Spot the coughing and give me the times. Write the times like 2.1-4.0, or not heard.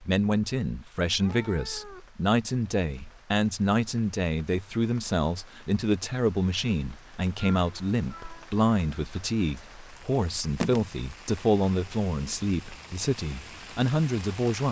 not heard.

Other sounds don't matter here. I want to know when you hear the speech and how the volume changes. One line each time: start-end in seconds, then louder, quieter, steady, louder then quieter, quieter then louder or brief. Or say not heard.
0.0-14.6 steady.